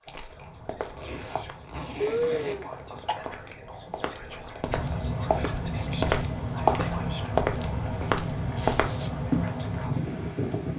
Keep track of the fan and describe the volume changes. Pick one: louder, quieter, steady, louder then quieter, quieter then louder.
louder.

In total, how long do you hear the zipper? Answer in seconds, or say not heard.
2 s.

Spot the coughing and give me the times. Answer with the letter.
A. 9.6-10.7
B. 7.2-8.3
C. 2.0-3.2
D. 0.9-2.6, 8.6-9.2
C.